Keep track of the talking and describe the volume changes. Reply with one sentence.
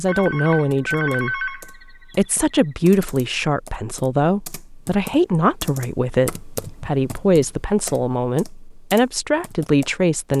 The volume of the talking stays about the same.